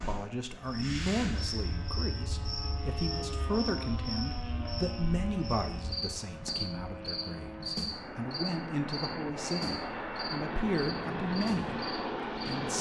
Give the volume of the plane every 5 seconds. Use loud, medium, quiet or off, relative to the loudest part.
medium, medium, loud.